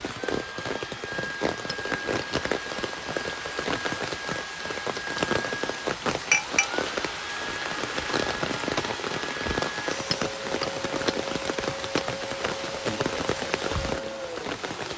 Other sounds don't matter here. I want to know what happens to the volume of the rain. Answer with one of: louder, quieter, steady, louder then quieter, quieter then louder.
steady.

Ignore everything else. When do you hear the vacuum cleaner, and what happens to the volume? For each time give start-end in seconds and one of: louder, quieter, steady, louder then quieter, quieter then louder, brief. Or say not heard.
0.0-14.9 steady.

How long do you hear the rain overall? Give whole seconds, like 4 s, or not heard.
15 s.